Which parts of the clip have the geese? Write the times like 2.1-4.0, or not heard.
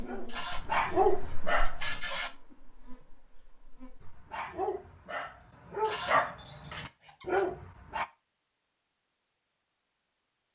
0.2-2.3, 5.8-7.5.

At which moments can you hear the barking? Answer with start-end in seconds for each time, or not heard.
0.0-1.8, 4.0-8.1.